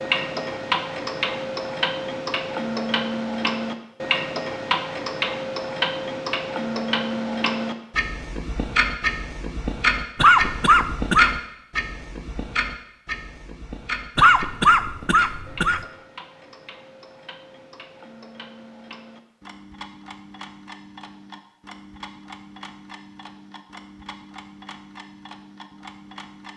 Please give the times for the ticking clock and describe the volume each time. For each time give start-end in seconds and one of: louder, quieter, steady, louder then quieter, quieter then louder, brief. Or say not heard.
0.0-26.5 quieter.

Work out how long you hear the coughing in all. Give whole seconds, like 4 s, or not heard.
3 s.